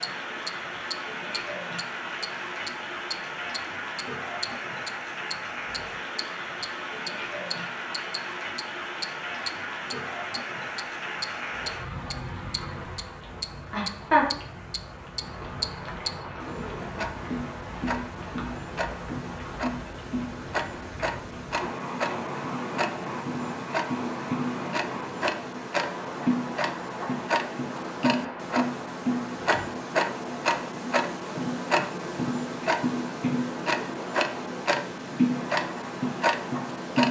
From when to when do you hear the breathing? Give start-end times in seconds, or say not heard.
not heard.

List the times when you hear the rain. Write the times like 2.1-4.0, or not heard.
0.0-37.0.